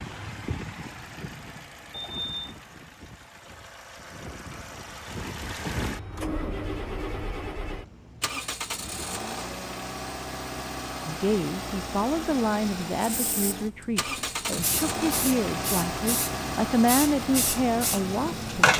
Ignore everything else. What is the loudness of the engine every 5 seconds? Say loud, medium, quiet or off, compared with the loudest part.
medium, loud, loud, loud.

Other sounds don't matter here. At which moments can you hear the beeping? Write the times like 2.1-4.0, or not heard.
1.9-2.6.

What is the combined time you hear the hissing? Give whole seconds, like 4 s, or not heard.
6 s.